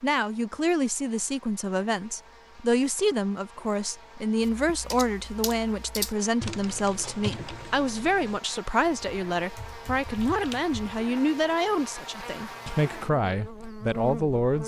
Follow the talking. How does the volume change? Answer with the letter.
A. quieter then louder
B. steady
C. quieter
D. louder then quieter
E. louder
B.